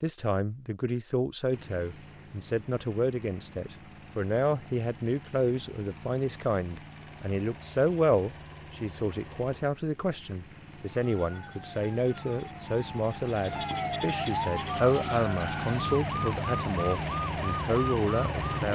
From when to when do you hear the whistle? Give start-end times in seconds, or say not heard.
not heard.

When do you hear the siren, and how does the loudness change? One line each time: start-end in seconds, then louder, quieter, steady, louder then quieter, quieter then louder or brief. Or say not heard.
10.8-18.7 louder.